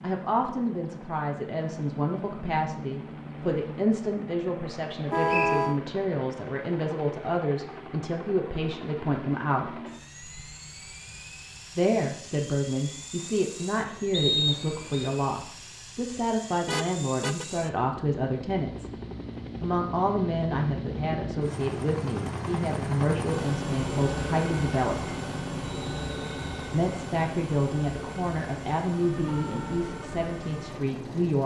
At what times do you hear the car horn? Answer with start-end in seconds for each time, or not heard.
5.1-5.8, 16.6-17.4.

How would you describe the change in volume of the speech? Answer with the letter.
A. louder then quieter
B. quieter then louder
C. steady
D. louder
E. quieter
C.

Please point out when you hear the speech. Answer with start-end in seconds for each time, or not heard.
0.0-9.8, 11.8-18.9, 19.6-25.1, 26.7-31.4.